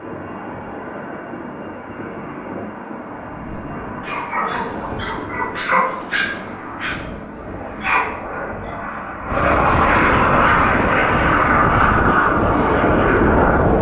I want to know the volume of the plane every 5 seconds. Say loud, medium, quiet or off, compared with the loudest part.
quiet, medium, loud.